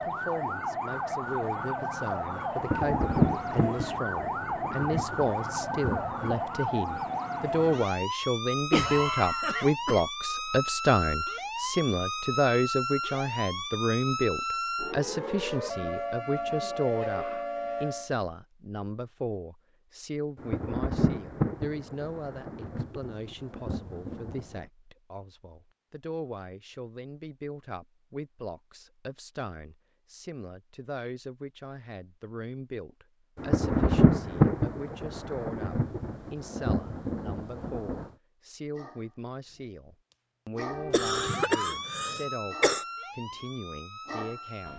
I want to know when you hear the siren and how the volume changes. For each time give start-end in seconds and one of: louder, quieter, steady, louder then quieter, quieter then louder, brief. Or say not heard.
0.0-18.1 steady
40.5-44.7 quieter.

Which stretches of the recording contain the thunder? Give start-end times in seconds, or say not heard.
2.5-6.3, 20.4-24.6, 33.4-38.0.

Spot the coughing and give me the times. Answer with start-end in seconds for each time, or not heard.
8.7-10.0, 40.9-42.9.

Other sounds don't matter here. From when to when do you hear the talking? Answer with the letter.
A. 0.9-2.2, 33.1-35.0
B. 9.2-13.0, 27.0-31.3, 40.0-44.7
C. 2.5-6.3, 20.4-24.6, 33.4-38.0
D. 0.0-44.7
D.